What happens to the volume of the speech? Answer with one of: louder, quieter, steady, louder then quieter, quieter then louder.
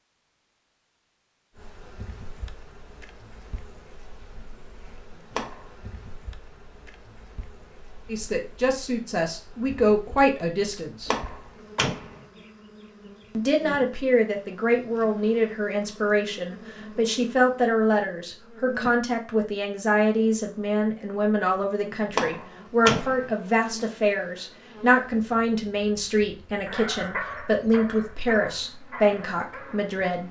steady.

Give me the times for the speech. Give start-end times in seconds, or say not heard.
8.1-11.1, 13.3-30.2.